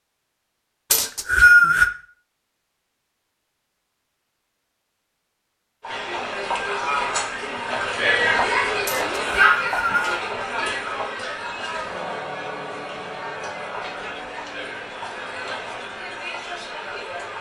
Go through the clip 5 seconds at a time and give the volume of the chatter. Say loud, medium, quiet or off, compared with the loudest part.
off, loud, medium, medium.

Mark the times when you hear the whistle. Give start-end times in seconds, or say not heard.
0.9-1.9, 8.8-10.2.